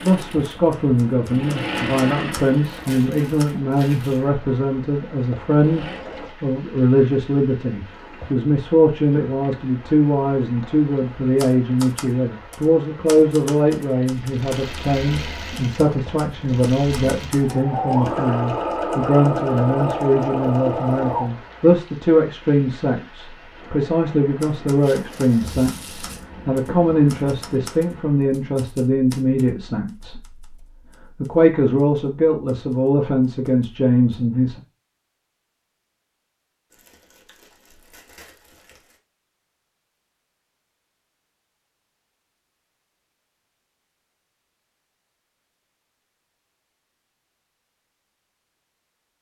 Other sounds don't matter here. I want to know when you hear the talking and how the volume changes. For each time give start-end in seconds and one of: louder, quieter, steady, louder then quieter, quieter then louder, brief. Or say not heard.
0.0-34.6 steady.